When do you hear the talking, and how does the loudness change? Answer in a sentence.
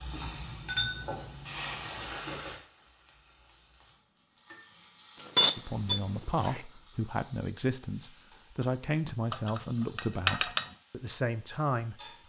The talking can be heard from 5.5 to 11.9 s, at a steady volume.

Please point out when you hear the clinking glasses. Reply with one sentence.
The clinking glasses can be heard from 0.2 to 2.0 s, from 5.2 to 6.6 s and from 9.3 to 10.7 s.